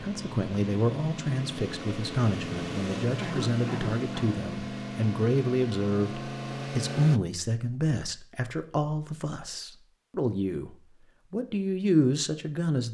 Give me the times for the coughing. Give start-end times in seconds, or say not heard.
3.1-4.4.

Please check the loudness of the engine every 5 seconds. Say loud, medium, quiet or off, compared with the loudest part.
loud, loud, off.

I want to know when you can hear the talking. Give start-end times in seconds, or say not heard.
0.0-12.8.